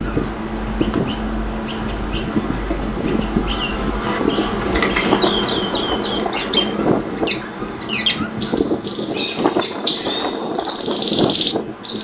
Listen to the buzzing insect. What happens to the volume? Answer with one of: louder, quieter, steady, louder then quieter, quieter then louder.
louder then quieter.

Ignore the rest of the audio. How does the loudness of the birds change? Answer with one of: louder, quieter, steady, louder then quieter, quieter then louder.
louder.